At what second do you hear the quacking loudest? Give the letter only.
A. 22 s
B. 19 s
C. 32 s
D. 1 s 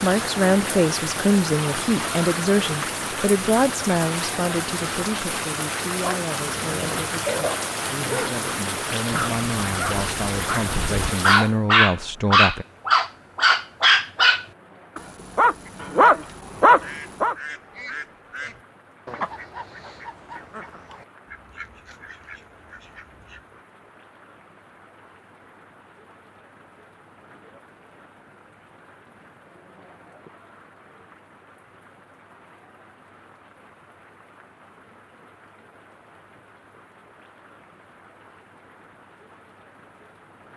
B.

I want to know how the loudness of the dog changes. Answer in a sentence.
The volume of the dog goes up.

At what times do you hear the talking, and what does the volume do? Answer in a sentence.
You can hear the talking from 0.0 to 12.7 s, getting quieter then louder.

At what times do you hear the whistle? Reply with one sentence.
The whistle can't be heard in this clip.